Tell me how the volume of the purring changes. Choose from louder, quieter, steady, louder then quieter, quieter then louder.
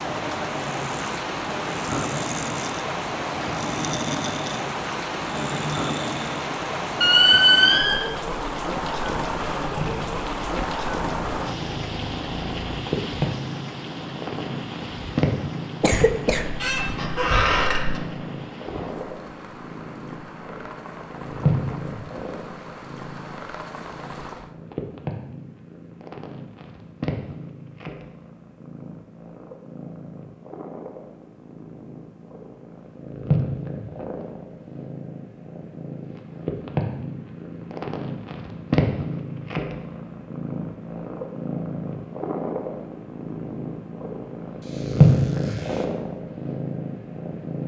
quieter then louder.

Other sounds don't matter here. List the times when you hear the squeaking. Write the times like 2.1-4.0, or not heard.
7.0-8.0, 16.4-18.0, 44.6-45.9.